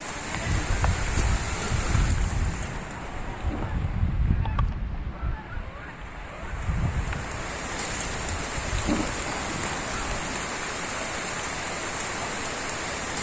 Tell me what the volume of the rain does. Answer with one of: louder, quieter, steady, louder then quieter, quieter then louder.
quieter then louder.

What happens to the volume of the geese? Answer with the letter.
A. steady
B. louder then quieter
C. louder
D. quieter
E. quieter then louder
D.